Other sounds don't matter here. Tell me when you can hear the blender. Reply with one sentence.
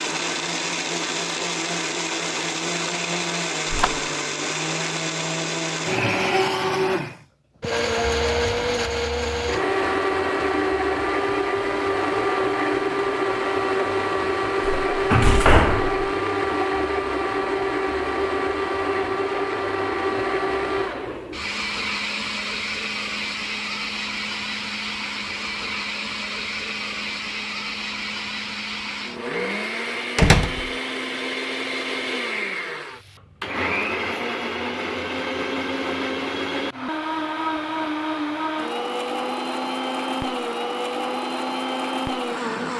The blender can be heard from 0.0 to 42.7 s.